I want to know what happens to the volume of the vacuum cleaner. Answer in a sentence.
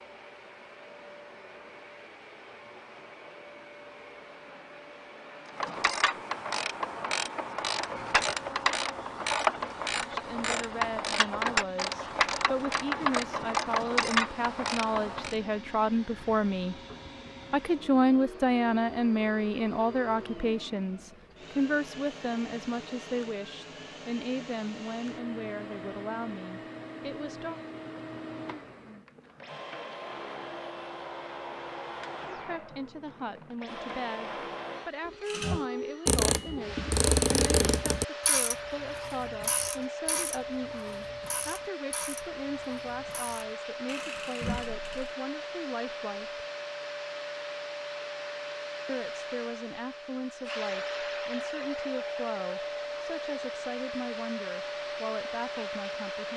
The volume of the vacuum cleaner goes up.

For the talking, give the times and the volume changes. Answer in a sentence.
The talking can be heard from 10.1 to 16.8 s, getting louder; from 17.5 to 27.6 s, getting quieter; from 32.3 to 46.4 s, at a steady volume; and from 48.9 to 56.3 s, at a steady volume.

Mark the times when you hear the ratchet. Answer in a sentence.
The ratchet can be heard from 5.5 to 15.3 s and from 35.2 to 45.1 s.